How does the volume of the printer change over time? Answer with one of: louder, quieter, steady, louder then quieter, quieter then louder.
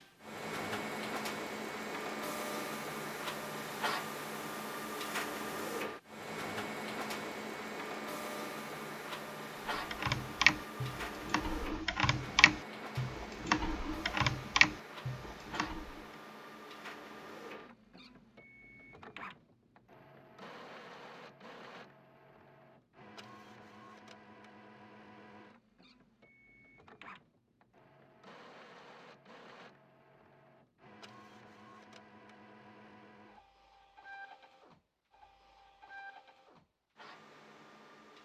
quieter.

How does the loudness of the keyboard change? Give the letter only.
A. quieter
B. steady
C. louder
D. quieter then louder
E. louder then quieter
D.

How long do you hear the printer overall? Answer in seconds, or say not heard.
38 s.